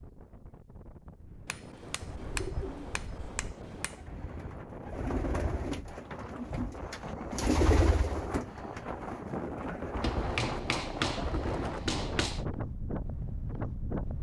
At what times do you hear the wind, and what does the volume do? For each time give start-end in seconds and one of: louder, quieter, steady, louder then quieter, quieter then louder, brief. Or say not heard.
0.0-14.1 louder.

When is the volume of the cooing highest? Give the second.
8 s.